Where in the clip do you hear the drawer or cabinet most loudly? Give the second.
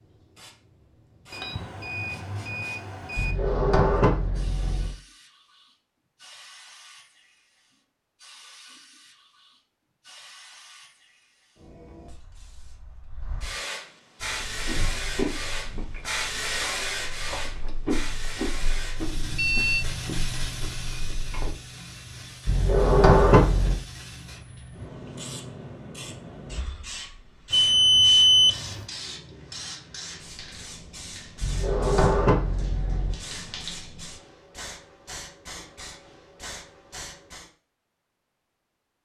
23 s.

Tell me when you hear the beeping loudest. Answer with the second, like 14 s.
28 s.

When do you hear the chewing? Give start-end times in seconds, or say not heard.
14.2-21.6.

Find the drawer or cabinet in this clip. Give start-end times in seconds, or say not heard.
3.1-5.0, 22.4-23.8, 31.4-33.1.